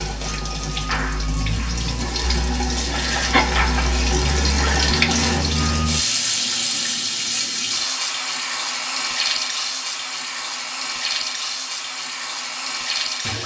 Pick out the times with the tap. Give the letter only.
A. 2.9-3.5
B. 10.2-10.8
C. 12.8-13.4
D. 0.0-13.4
D.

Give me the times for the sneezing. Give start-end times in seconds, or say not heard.
2.9-3.5.